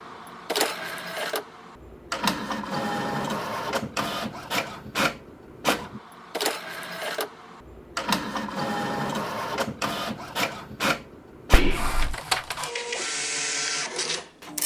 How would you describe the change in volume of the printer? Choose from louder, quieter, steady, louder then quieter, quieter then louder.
steady.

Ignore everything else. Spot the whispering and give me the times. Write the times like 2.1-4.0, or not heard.
11.5-12.2.